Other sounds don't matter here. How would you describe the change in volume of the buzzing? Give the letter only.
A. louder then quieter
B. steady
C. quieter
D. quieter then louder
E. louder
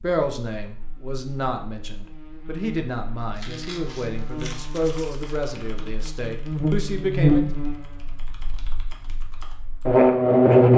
E.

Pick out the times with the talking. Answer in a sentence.
You can hear the talking from 0.0 to 7.5 s.